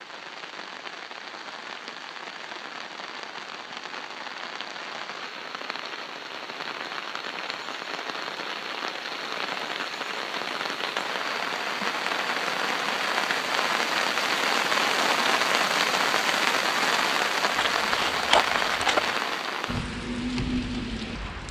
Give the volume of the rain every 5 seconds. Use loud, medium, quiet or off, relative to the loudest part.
quiet, medium, loud, loud, medium.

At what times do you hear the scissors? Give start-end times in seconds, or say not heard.
17.6-19.2.